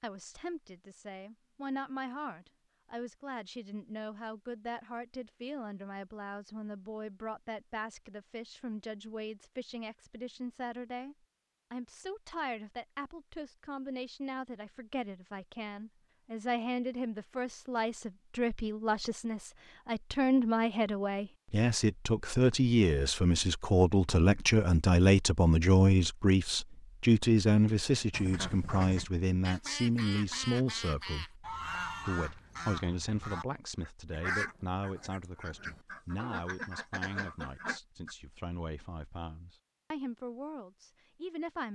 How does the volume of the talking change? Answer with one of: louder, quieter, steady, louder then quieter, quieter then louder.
louder then quieter.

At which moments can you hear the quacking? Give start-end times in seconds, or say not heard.
28.1-38.1.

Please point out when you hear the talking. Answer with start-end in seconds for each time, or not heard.
0.0-41.7.